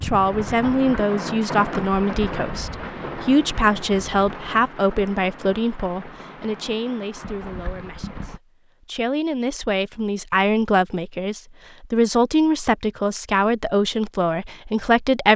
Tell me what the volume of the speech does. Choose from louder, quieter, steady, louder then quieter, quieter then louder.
quieter then louder.